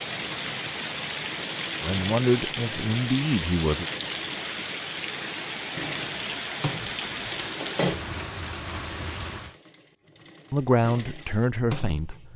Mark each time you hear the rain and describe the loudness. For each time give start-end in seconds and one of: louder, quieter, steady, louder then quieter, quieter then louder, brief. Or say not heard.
0.0-9.6 steady.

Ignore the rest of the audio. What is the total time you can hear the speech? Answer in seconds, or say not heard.
4 s.